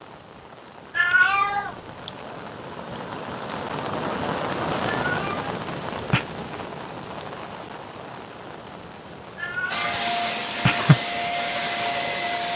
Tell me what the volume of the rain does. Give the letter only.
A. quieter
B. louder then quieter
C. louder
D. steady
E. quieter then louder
B.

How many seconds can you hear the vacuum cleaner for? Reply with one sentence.
The vacuum cleaner can be heard for 3 seconds in total.